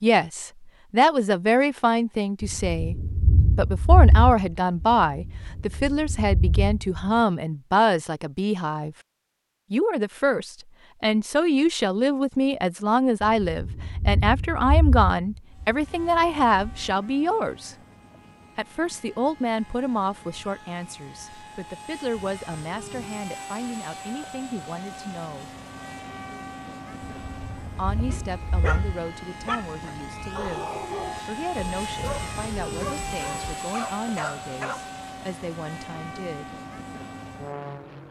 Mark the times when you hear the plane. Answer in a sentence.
You can hear the plane from 15.4 to 38.0 s.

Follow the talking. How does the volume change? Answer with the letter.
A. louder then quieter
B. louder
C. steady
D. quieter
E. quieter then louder
D.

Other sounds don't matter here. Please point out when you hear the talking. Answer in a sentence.
The talking can be heard from 0.0 to 8.9 s, from 9.7 to 17.8 s, from 18.6 to 25.5 s and from 27.8 to 36.5 s.